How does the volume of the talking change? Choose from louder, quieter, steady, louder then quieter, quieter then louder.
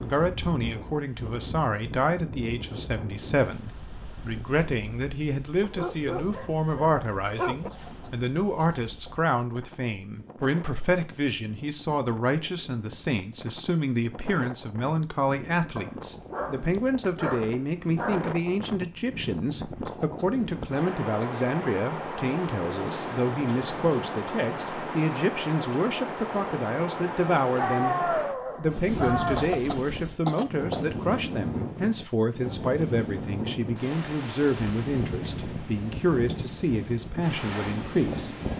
steady.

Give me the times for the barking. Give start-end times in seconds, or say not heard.
5.6-7.7, 15.8-18.2, 27.6-29.5.